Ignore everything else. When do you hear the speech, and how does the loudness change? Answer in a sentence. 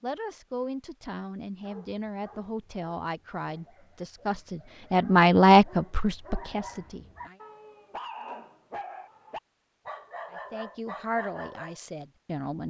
You can hear the speech from 0.0 to 7.3 s, getting louder then quieter; and briefly from 10.3 to 12.6 s.